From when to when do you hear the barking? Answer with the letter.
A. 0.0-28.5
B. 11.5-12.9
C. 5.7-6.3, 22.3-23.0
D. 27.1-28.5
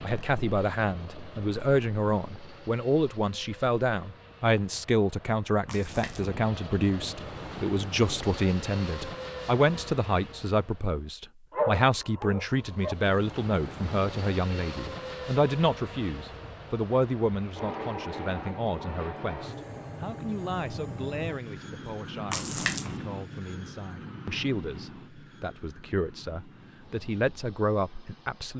B.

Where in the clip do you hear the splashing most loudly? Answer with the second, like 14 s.
23 s.